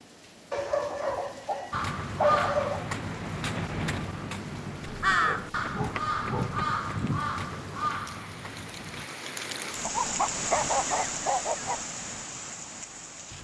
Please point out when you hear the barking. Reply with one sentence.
The barking can be heard from 0.5 to 2.9 s, from 5.0 to 6.7 s and from 9.8 to 11.8 s.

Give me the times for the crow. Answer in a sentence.
You can hear the crow from 1.7 to 9.1 s.